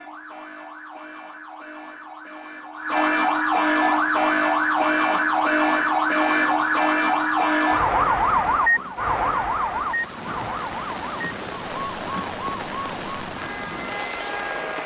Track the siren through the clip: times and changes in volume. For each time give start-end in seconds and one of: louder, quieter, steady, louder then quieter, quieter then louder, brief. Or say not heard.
0.0-14.8 louder then quieter.